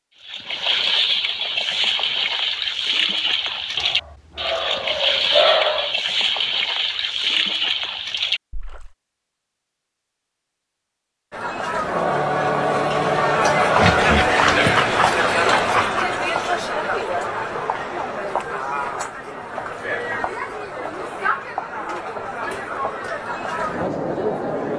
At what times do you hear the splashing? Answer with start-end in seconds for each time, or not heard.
0.2-8.9.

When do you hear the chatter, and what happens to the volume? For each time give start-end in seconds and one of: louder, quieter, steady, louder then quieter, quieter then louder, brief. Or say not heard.
11.3-24.7 quieter.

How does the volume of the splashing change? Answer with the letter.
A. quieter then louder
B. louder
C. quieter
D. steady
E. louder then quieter
D.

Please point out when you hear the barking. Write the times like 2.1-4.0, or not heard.
3.8-6.0, 13.7-16.1.